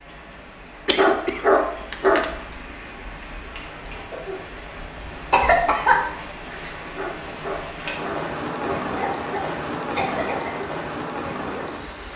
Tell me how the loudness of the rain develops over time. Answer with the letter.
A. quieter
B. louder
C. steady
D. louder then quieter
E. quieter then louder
B.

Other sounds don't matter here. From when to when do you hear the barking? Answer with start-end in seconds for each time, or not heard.
0.9-2.2, 7.0-8.8.